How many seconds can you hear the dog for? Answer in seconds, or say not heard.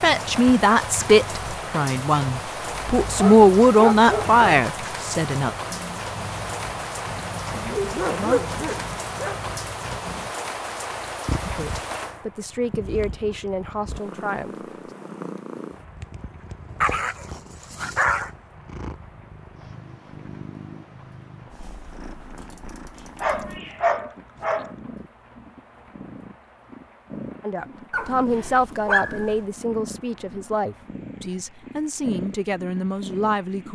8 s.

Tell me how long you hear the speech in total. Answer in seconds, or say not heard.
15 s.